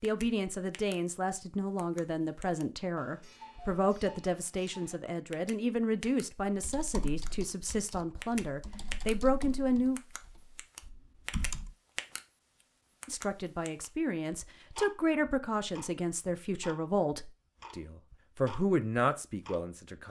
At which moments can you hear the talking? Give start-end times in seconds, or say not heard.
0.0-10.0, 13.1-20.0.